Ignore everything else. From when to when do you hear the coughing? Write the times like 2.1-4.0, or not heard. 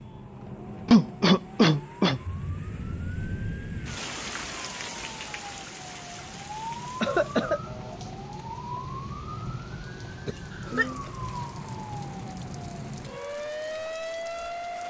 0.8-2.2, 7.0-7.6, 10.2-11.0.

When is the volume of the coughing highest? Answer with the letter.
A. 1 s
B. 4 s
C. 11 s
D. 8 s
A.